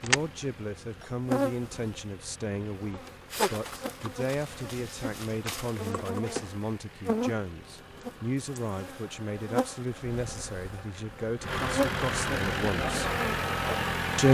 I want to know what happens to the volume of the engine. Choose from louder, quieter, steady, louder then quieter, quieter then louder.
louder.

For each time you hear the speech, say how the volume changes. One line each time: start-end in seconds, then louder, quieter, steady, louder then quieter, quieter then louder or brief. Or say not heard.
0.0-13.2 steady.